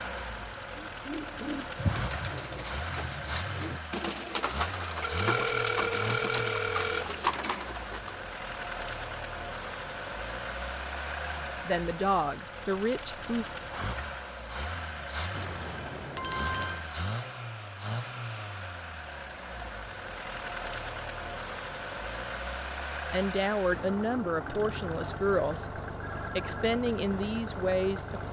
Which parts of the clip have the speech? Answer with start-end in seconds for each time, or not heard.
11.7-13.4, 23.1-28.2.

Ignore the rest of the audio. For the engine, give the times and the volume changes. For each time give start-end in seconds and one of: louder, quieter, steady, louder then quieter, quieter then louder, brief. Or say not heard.
0.0-28.2 steady.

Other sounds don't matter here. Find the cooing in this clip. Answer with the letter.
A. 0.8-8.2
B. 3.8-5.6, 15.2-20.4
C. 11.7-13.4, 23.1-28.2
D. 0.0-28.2
A.